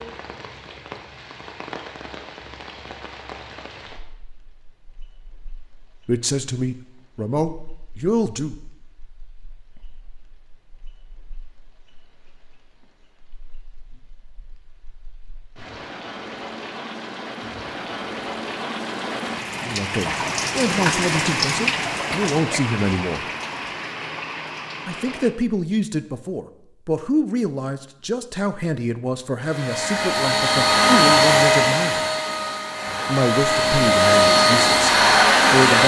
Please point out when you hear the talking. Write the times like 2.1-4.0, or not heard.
6.0-8.6, 19.6-23.2, 24.9-32.0, 33.0-35.8.